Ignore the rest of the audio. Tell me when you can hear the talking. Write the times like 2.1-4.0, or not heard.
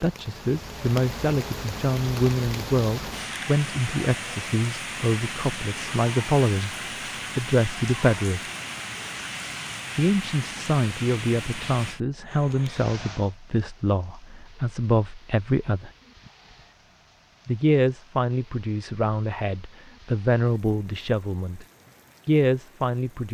0.0-6.8, 7.3-8.5, 9.9-15.9, 17.4-21.6, 22.2-23.2.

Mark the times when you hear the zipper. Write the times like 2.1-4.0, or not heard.
not heard.